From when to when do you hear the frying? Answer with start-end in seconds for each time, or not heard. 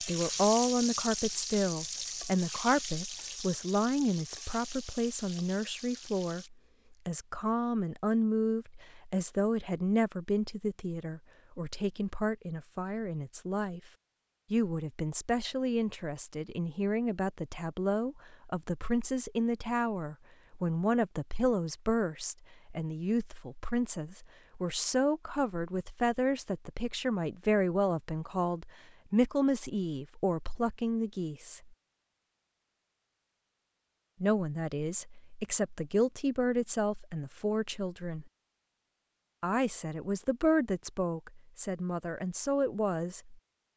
0.0-6.5.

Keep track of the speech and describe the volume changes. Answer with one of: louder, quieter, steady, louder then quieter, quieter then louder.
steady.